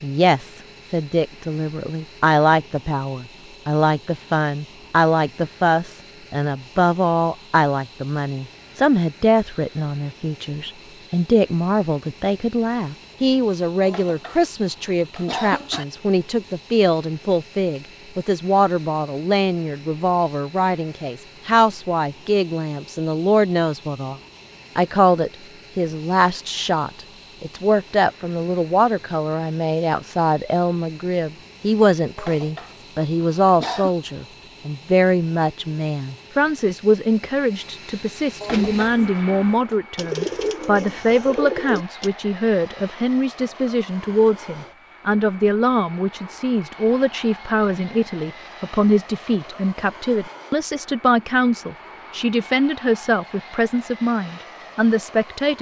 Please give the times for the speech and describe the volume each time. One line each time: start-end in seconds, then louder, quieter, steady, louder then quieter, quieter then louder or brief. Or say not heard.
0.0-55.5 steady.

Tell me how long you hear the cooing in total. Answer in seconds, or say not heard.
4 s.